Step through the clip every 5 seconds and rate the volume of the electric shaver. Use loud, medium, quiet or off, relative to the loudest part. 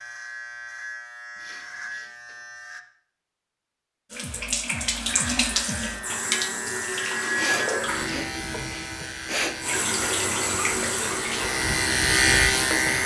quiet, medium, loud.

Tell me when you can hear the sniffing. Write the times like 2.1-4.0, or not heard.
1.4-2.1, 7.3-9.6.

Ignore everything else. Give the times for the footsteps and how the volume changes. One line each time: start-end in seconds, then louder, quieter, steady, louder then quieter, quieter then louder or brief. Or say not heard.
not heard.